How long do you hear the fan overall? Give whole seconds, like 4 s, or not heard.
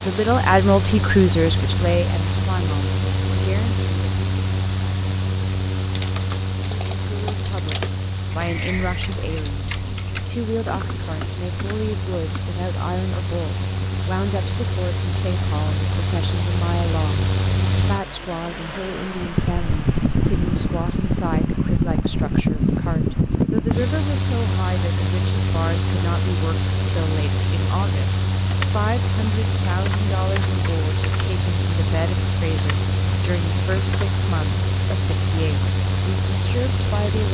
37 s.